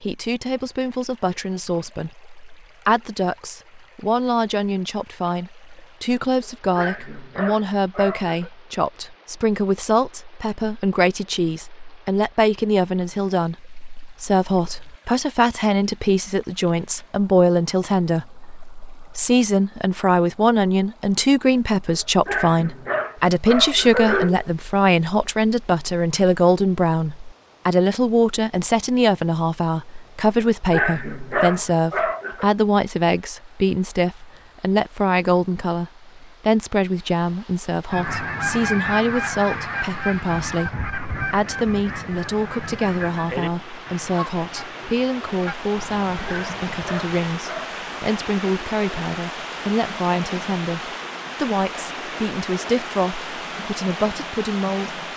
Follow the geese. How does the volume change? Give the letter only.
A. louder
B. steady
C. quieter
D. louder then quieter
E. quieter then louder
C.